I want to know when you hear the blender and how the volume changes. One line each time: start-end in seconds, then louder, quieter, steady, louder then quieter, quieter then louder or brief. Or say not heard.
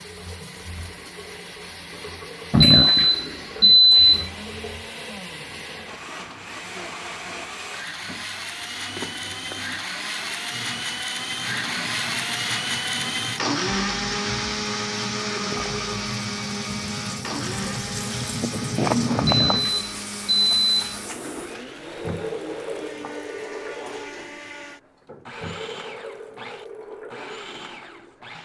0.0-28.4 louder then quieter.